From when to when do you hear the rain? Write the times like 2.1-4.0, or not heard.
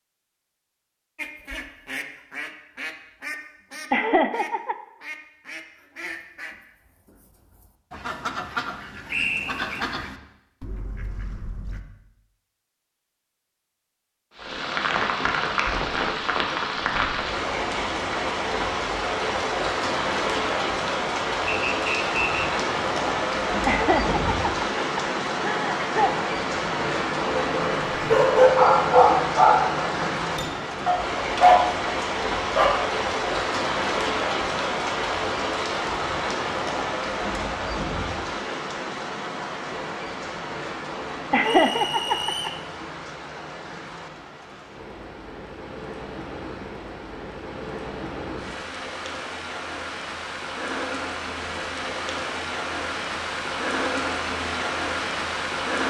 14.3-55.8.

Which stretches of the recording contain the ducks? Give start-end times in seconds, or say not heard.
1.1-11.8.